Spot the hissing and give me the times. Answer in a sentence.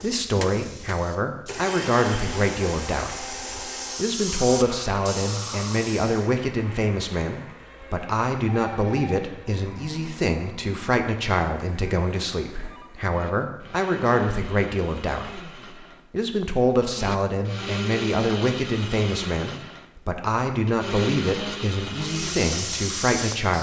You can hear the hissing from 0.0 to 6.3 s and from 21.9 to 23.5 s.